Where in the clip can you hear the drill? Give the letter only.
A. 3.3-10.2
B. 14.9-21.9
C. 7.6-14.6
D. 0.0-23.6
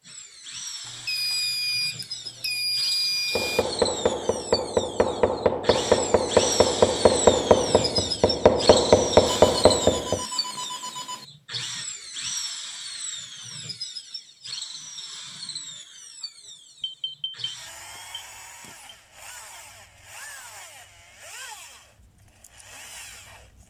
D.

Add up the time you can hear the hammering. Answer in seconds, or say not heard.
7 s.